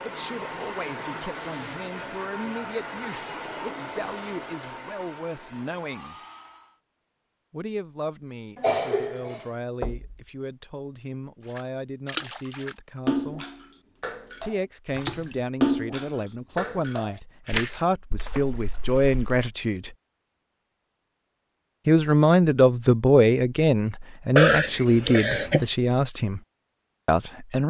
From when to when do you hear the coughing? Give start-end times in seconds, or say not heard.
8.6-9.4, 24.4-25.6.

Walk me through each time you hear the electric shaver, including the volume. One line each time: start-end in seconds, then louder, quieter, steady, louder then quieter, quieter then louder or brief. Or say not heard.
not heard.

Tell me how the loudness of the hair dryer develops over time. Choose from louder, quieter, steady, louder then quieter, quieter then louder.
quieter.